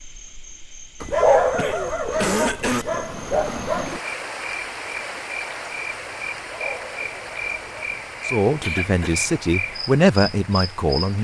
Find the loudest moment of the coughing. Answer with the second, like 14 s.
2 s.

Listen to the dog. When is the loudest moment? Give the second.
1 s.